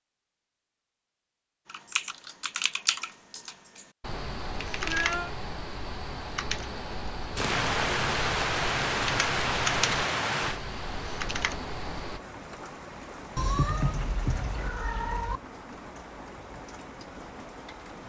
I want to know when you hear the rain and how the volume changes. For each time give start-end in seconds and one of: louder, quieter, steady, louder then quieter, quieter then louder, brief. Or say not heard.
7.3-18.0 quieter.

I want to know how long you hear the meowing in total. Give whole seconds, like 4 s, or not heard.
3 s.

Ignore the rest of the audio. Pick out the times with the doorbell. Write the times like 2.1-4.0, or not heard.
not heard.